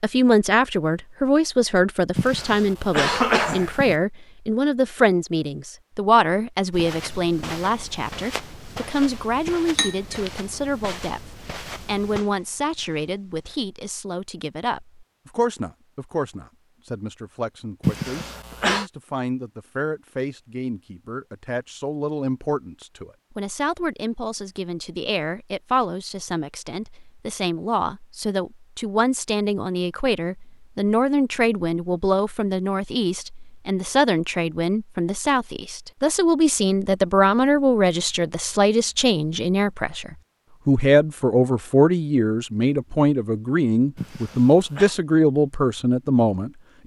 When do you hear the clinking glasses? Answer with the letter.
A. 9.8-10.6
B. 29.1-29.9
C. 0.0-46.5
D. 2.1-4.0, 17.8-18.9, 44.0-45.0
A.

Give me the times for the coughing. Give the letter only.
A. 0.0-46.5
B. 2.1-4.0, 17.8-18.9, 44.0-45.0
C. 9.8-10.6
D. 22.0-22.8
B.